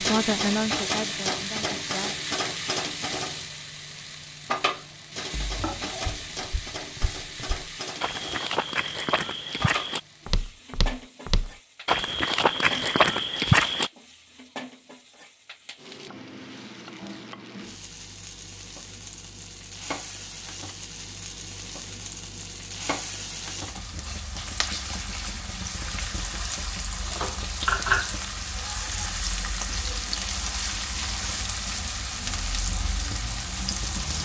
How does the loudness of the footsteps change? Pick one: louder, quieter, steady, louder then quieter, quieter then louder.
louder.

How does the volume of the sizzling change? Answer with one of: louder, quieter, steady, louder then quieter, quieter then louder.
quieter then louder.